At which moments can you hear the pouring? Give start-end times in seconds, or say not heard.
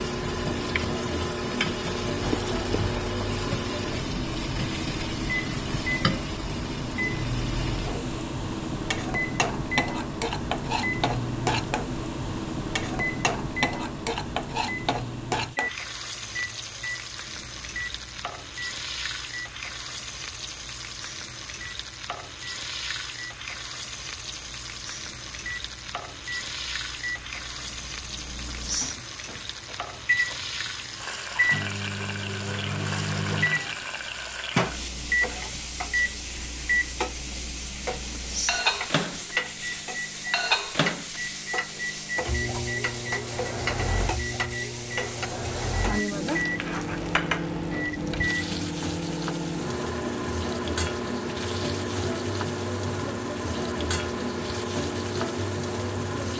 2.1-3.1.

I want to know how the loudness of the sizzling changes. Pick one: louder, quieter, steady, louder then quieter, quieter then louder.
steady.